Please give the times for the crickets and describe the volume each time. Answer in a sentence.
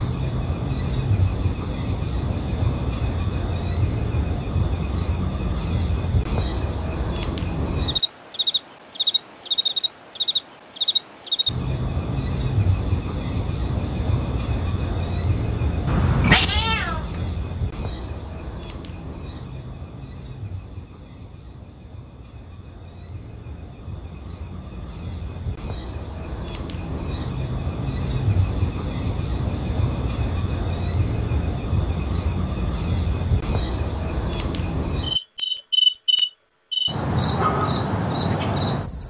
The crickets can be heard from 0.0 to 39.0 s, getting quieter then louder.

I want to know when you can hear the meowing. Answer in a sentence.
The meowing can be heard from 15.8 to 17.2 s.